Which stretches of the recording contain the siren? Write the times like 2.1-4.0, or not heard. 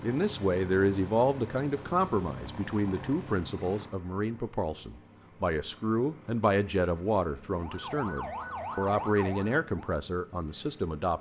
7.5-10.0.